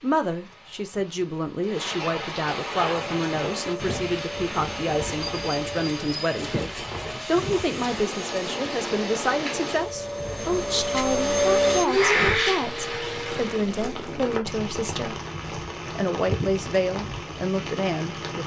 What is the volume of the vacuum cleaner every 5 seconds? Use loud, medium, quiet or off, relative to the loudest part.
quiet, quiet, loud, off.